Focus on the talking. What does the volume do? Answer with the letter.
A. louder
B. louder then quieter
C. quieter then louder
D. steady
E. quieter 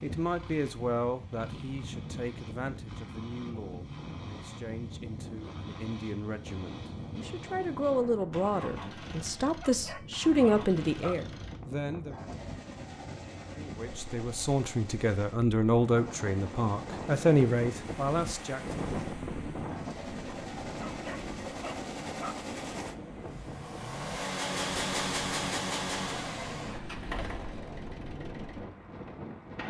C.